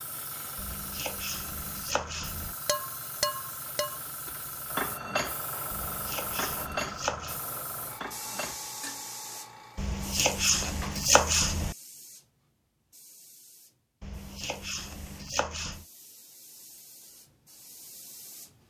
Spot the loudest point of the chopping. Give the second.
11 s.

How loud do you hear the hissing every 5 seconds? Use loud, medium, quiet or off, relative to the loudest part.
loud, loud, medium, quiet.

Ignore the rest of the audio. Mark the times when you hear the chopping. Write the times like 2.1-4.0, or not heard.
0.6-2.5, 5.7-7.4, 9.8-11.8, 14.0-15.8.